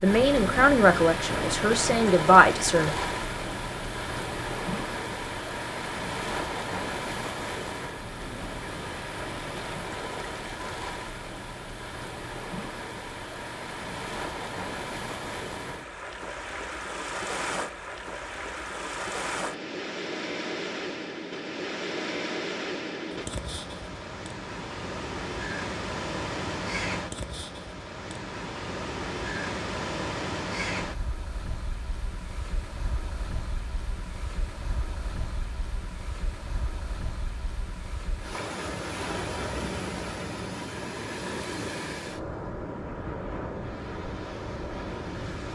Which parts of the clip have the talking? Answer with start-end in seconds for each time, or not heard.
0.0-3.0.